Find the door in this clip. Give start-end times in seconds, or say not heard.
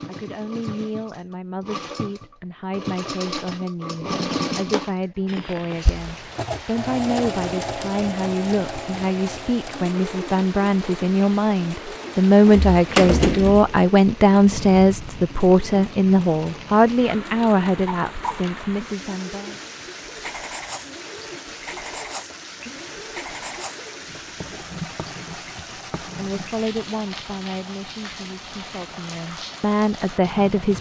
12.1-13.8.